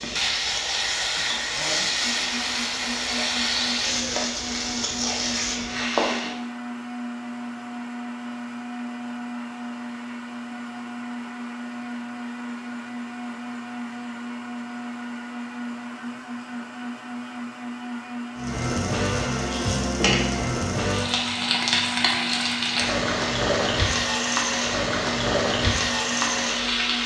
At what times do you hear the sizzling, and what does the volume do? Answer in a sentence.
The sizzling can be heard from 0.0 to 6.3 s, at a steady volume; and from 18.4 to 27.0 s, at a steady volume.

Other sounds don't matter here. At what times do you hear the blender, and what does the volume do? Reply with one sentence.
You can hear the blender from 0.0 to 27.0 s, at a steady volume.